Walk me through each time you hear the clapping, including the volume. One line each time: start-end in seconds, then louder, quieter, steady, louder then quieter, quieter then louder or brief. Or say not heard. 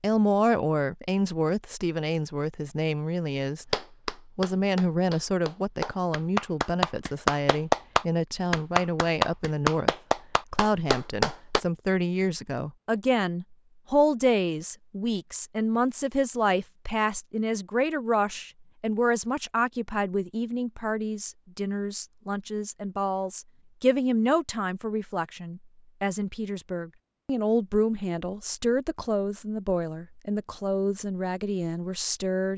3.6-11.6 louder then quieter.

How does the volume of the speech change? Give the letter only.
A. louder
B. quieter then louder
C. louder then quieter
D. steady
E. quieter
D.